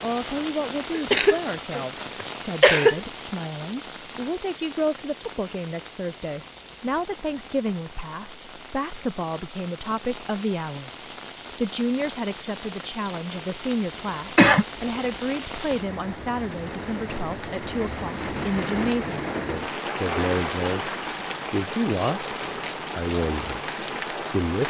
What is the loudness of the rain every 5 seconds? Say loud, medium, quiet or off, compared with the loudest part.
medium, quiet, medium, loud, loud.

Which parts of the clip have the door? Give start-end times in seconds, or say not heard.
not heard.